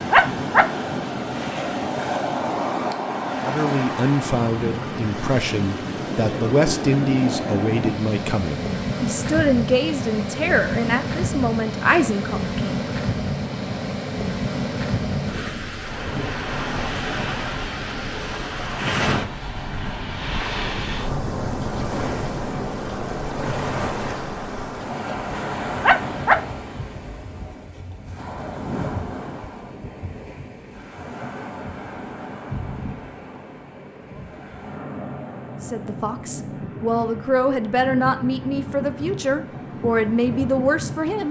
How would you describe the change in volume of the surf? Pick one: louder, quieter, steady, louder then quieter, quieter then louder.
quieter.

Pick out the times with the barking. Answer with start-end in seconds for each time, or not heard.
0.1-0.7, 25.8-26.4.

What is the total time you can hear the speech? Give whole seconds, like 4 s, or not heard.
15 s.